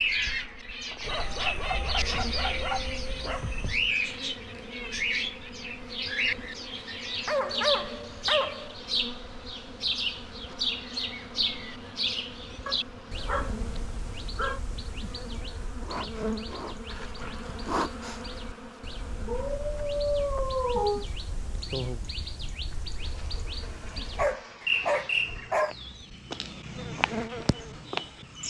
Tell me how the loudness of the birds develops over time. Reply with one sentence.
The loudness of the birds goes down, then up.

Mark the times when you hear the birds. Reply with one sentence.
The birds can be heard from 0.0 to 28.4 s.